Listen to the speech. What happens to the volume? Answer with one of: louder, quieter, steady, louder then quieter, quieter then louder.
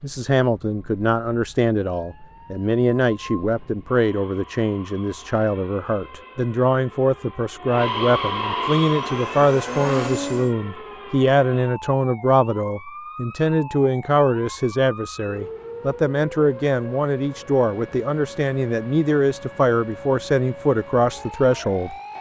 steady.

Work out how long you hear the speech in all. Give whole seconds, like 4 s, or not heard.
22 s.